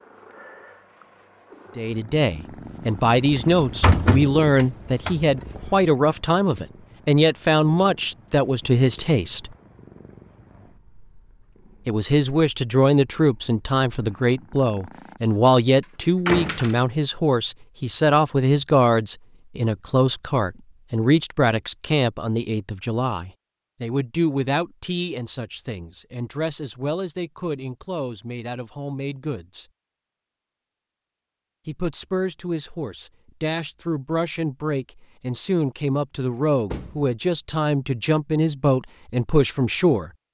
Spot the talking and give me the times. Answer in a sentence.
The talking can be heard from 1.8 to 9.5 s, from 11.8 to 29.6 s and from 31.6 to 40.1 s.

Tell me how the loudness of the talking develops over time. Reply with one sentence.
The loudness of the talking goes down, then up.